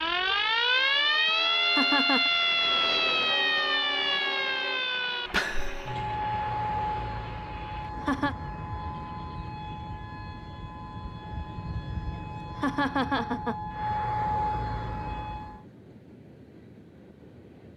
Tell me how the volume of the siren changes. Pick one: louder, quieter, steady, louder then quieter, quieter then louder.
quieter then louder.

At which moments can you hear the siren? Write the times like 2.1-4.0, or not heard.
0.0-15.6.